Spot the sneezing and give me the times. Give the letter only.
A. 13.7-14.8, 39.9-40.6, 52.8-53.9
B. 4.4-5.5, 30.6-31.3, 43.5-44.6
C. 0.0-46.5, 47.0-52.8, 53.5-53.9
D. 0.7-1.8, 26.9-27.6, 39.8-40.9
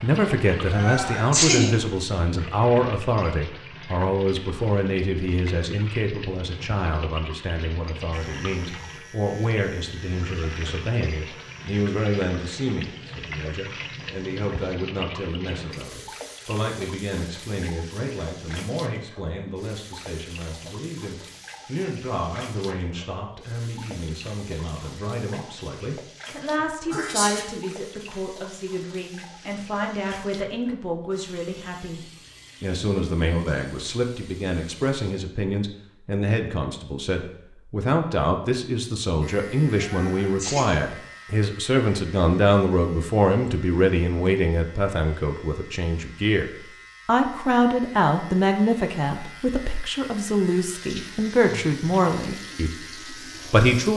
D.